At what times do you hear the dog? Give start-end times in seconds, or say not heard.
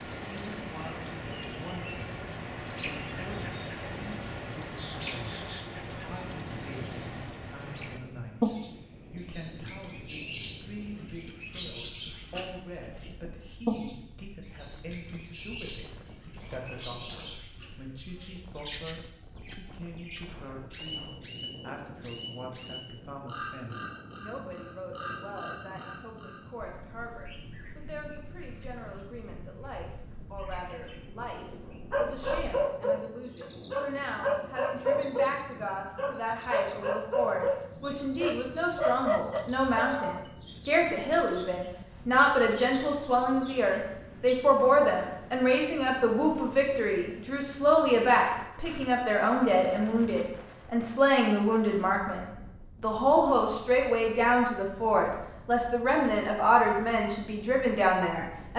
31.9-40.2.